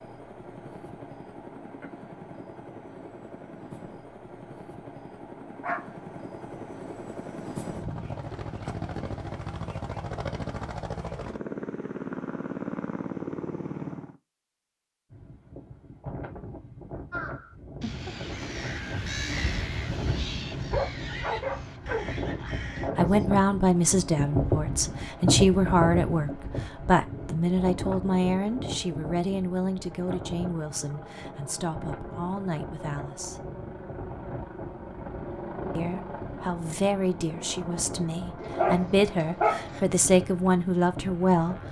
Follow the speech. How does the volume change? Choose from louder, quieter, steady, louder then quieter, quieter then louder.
quieter then louder.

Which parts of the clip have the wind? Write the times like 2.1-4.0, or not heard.
15.1-41.6.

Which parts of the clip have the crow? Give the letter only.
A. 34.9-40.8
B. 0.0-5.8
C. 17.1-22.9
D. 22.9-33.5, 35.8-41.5
C.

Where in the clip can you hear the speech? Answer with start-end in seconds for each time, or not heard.
22.9-33.5, 35.8-41.5.